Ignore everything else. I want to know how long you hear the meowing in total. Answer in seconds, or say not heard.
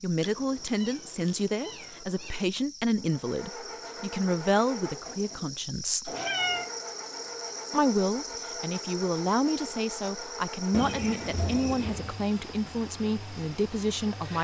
4 s.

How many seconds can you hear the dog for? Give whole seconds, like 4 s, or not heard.
not heard.